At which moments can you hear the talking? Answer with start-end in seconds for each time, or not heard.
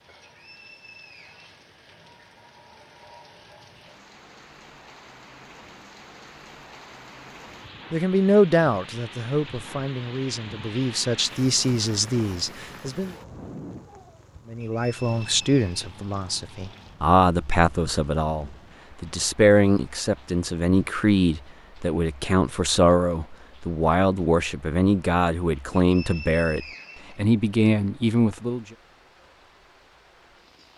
7.9-13.2, 14.4-28.6.